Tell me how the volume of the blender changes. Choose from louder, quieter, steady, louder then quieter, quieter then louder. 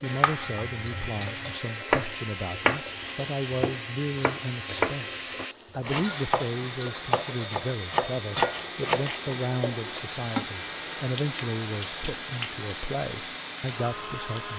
steady.